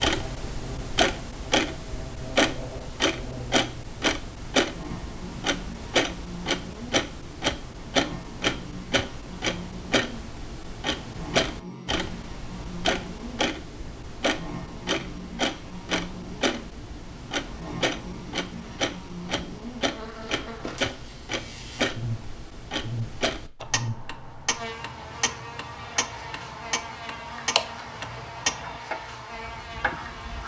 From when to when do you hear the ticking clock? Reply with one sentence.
You can hear the ticking clock from 0.0 to 30.4 s.